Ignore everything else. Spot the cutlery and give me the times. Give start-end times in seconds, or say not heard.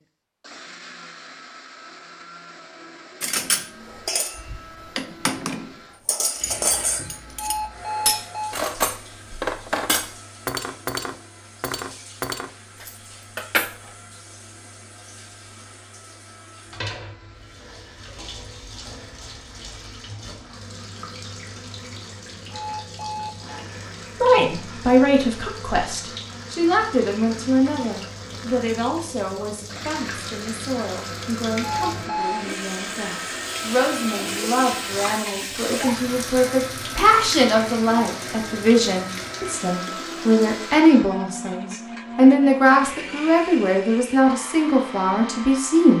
3.2-13.9.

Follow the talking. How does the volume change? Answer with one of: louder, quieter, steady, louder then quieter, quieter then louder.
quieter then louder.